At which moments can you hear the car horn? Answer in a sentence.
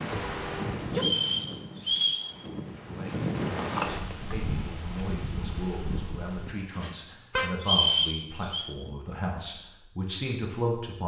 You can hear the car horn from 0.1 to 1.1 s and from 6.5 to 7.5 s.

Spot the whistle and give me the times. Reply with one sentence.
The whistle can be heard from 0.9 to 2.2 s and from 7.6 to 8.7 s.